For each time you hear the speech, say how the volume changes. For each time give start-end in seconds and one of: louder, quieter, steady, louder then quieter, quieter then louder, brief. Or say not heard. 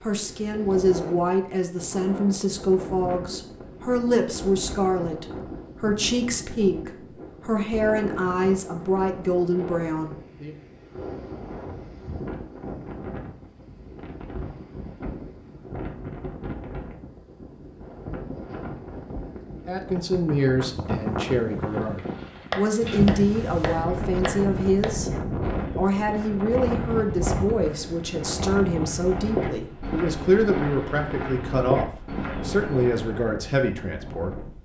0.0-10.6 steady
19.6-34.6 steady.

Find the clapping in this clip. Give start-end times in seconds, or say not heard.
22.5-25.1.